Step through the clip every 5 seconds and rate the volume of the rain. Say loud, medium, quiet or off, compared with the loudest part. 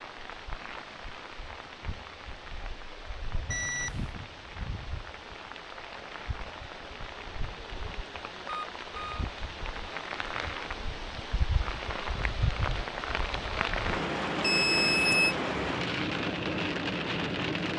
quiet, medium, loud, loud.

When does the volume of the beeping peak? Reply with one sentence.
The loudest moment of the beeping is at 15 seconds.